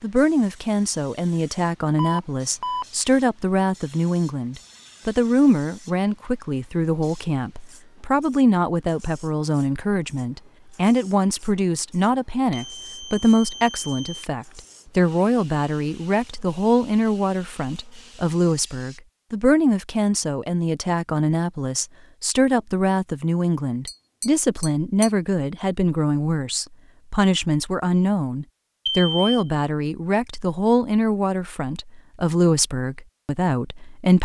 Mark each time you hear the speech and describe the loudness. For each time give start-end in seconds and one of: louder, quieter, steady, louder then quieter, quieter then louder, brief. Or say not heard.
0.0-34.2 steady.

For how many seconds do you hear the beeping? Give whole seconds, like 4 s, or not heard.
3 s.